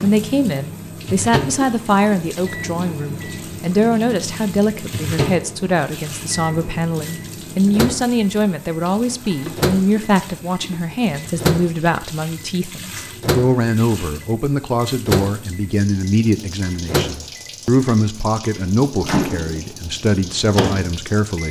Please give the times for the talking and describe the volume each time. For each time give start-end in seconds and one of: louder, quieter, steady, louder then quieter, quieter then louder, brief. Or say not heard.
0.0-21.4 steady.